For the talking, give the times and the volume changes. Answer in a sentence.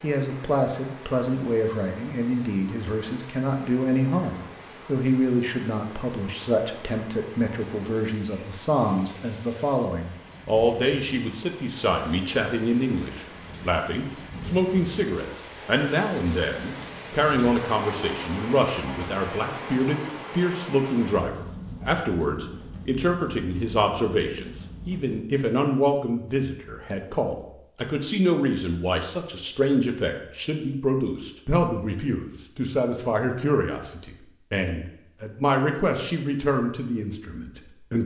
You can hear the talking from 0.0 to 38.0 s, at a steady volume.